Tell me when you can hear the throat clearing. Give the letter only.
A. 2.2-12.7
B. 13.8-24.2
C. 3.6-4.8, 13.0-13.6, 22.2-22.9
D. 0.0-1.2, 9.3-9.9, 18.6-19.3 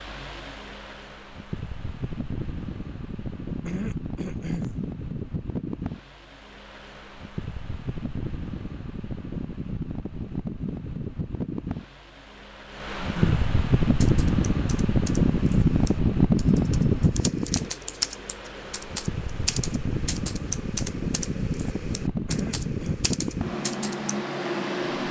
C.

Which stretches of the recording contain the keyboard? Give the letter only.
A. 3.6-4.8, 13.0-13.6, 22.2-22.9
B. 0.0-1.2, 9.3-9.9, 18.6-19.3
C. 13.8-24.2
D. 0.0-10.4
C.